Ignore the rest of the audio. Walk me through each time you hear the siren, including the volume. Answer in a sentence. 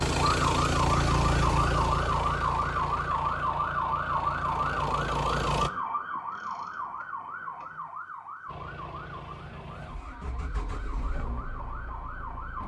You can hear the siren from 0.1 to 12.6 s, getting quieter.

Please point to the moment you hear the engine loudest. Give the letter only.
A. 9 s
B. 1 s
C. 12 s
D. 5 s
B.